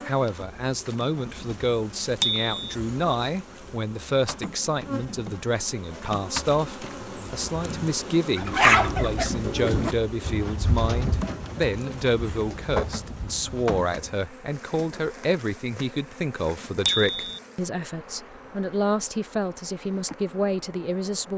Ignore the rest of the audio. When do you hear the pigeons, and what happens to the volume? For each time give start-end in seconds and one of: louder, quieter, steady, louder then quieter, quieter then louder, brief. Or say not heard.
8.3-14.2 quieter.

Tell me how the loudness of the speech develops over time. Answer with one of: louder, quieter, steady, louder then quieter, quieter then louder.
steady.